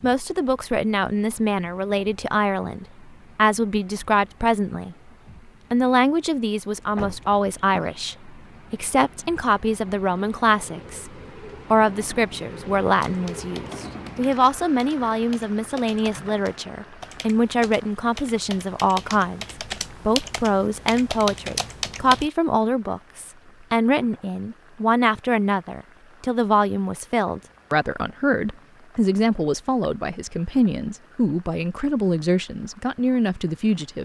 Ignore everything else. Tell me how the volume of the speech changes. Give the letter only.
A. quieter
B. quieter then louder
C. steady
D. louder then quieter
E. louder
C.